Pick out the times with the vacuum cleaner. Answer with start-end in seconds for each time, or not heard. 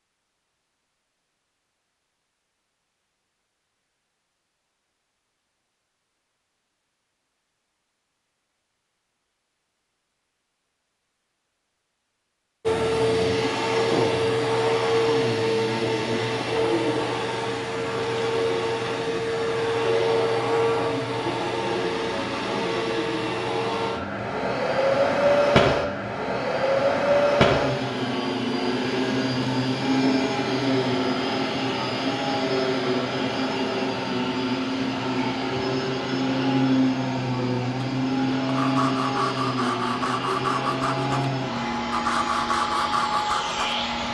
12.7-44.0.